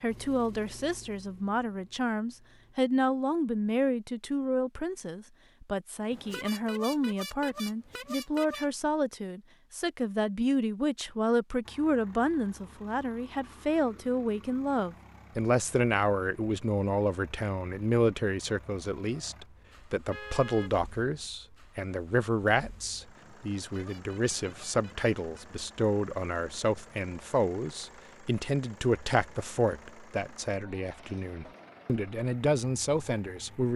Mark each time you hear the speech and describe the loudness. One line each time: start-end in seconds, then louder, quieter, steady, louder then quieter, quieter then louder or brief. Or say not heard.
0.0-33.7 steady.